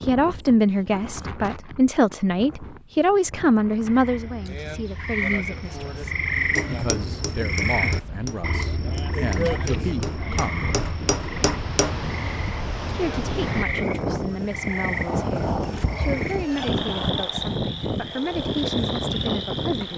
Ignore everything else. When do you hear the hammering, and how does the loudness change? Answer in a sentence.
The hammering can be heard from 6.5 to 12.0 s, getting louder.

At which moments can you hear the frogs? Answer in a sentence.
You can hear the frogs from 3.8 to 19.9 s.